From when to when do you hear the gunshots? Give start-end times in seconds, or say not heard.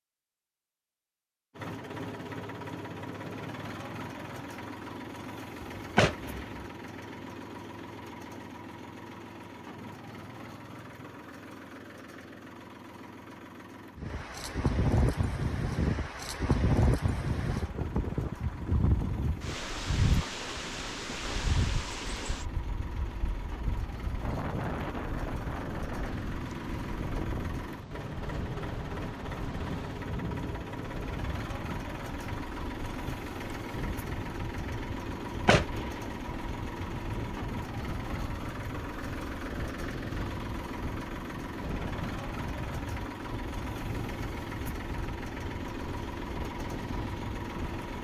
5.8-6.7, 35.2-36.1.